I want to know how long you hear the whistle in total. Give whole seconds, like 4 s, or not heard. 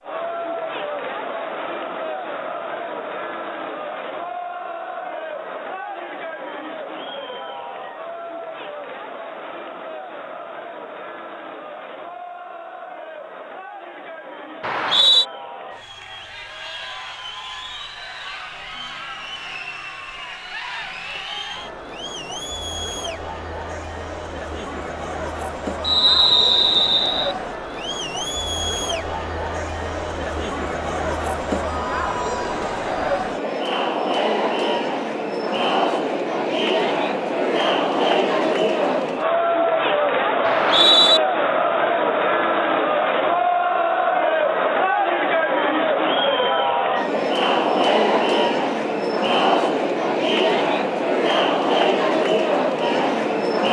3 s.